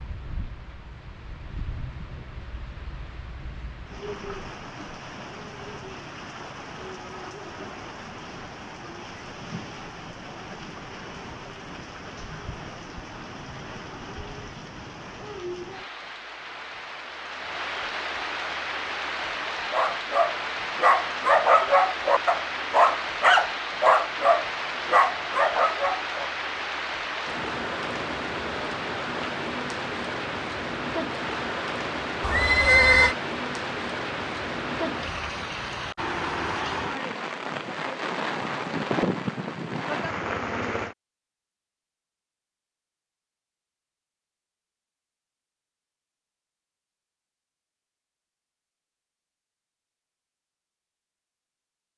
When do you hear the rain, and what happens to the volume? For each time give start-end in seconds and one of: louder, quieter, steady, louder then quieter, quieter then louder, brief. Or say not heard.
0.0-41.0 louder.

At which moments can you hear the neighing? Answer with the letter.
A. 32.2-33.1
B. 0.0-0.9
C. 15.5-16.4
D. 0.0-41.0
A.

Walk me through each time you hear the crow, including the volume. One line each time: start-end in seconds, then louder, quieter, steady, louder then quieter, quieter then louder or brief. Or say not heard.
not heard.